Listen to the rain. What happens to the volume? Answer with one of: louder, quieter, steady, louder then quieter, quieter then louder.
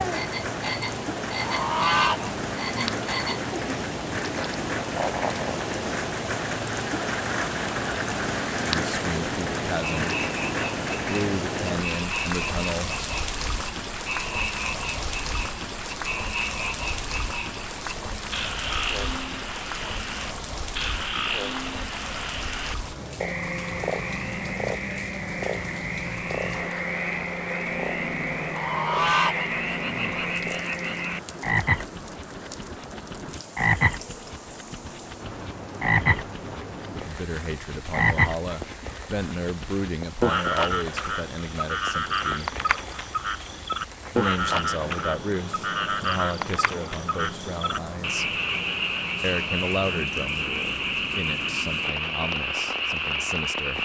quieter.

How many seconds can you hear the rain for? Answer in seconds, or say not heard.
54 s.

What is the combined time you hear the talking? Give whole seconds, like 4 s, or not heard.
18 s.